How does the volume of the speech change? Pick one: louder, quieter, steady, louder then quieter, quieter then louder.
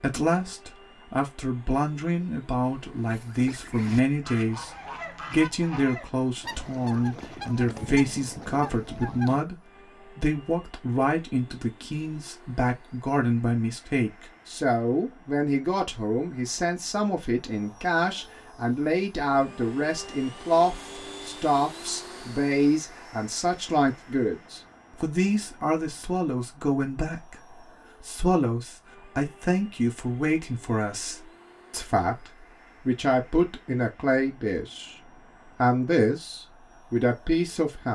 steady.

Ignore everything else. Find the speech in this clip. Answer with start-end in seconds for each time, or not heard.
0.0-4.7, 5.3-37.8.